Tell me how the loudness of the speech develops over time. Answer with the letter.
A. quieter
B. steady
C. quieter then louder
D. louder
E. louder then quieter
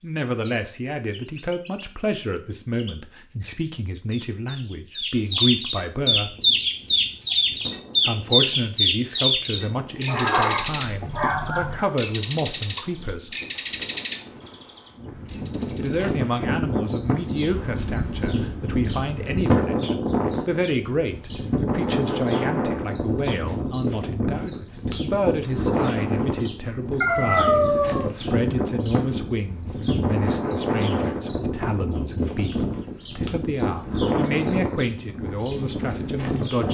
B.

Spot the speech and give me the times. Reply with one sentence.
You can hear the speech from 0.0 to 6.3 s, from 8.1 to 13.3 s and from 15.8 to 36.6 s.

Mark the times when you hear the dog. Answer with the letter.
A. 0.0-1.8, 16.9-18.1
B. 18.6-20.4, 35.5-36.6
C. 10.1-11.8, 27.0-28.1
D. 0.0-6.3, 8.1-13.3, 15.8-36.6
C.